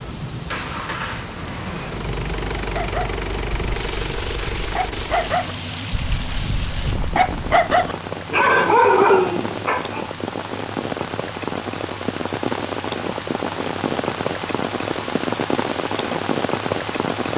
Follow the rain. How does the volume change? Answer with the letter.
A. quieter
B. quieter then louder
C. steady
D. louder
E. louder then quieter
D.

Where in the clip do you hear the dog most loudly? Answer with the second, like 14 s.
9 s.